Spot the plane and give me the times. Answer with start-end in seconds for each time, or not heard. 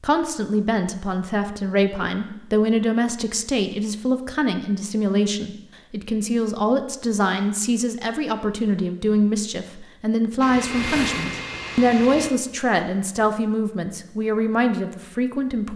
10.4-12.3.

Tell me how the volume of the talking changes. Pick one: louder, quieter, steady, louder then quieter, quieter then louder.
steady.